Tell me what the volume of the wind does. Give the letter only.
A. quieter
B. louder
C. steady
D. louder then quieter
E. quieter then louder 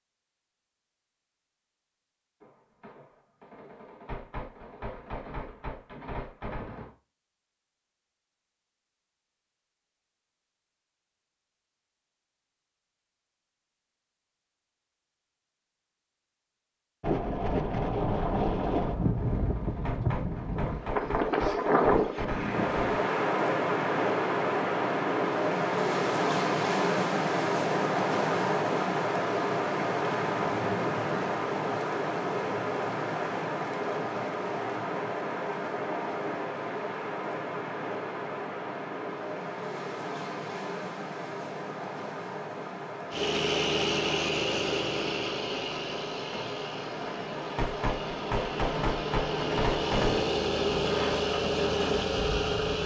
A.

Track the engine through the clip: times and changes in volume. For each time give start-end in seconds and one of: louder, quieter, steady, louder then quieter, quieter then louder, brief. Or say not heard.
43.1-52.8 quieter then louder.